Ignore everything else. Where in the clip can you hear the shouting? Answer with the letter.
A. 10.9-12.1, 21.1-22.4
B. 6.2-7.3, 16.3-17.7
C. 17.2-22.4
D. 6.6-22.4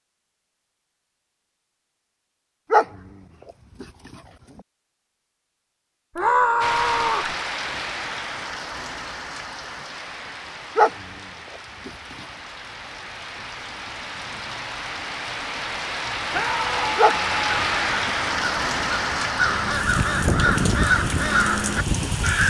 B.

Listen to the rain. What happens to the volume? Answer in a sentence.
The volume of the rain goes down, then up.